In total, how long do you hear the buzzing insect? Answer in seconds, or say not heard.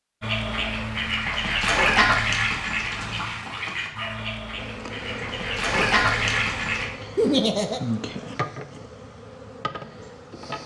6 s.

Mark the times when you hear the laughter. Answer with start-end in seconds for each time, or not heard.
7.2-7.8.